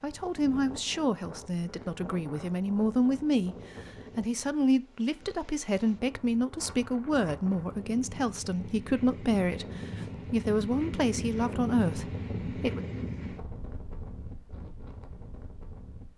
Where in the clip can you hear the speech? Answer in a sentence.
The speech can be heard from 0.0 to 12.8 s.